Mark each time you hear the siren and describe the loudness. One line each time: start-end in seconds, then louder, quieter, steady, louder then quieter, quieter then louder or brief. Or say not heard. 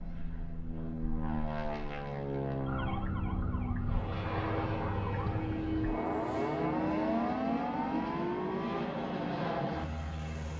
2.6-8.9 louder.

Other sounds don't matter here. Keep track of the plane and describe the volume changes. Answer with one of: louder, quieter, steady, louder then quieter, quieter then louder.
steady.